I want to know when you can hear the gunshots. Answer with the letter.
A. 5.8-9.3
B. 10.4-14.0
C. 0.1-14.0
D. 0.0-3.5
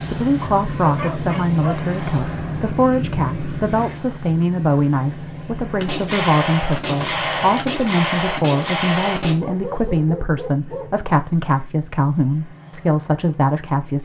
A.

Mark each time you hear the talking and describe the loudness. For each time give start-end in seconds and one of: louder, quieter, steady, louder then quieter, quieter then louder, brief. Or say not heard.
0.1-14.0 steady.